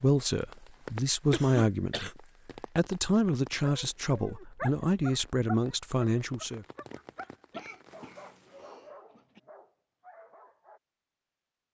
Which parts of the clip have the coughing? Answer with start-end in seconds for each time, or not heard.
1.3-2.1, 7.5-9.4.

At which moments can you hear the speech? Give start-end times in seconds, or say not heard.
0.0-2.1, 2.8-6.7.